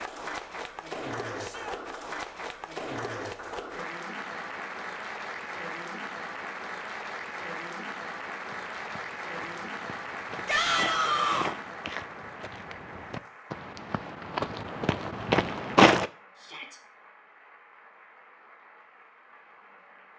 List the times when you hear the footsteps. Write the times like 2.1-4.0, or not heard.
8.5-16.1.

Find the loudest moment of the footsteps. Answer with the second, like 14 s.
16 s.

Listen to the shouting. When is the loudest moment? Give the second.
11 s.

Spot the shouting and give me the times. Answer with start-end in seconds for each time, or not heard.
1.4-1.8, 10.4-11.6, 16.4-16.8.